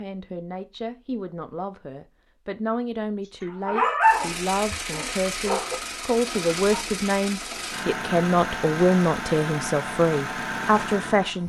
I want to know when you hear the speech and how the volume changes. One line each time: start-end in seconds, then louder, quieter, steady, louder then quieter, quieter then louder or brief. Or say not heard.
0.0-11.4 louder.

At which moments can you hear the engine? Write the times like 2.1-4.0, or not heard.
4.0-11.4.